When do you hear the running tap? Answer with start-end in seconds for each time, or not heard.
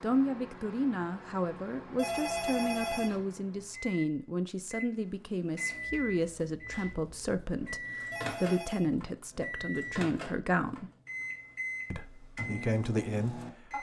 not heard.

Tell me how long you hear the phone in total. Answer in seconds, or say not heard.
2 s.